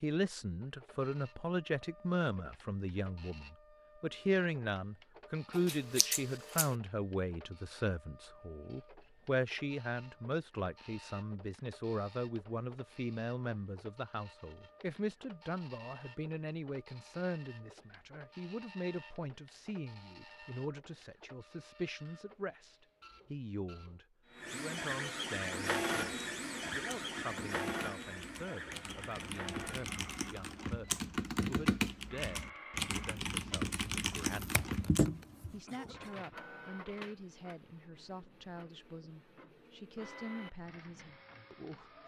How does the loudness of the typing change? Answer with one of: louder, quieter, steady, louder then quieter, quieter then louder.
louder.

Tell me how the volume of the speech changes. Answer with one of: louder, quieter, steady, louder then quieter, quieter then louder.
quieter.